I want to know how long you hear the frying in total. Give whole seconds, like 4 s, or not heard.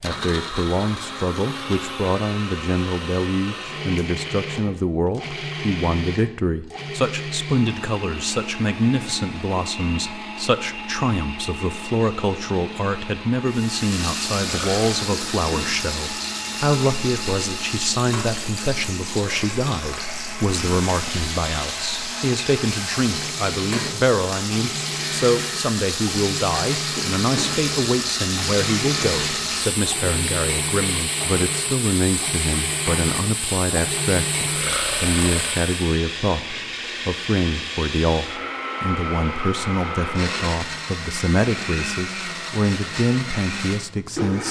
22 s.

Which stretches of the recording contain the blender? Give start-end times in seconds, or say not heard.
0.0-44.4.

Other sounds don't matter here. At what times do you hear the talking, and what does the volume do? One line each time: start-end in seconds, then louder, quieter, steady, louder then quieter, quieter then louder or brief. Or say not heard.
0.0-44.4 steady.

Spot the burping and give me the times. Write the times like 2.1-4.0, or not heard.
14.3-15.1, 34.5-35.7.